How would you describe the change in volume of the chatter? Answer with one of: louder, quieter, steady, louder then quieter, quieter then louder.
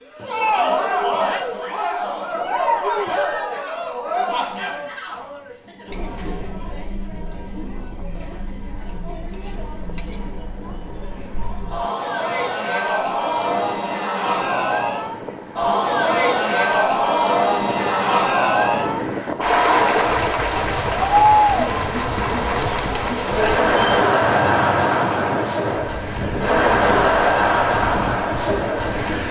quieter then louder.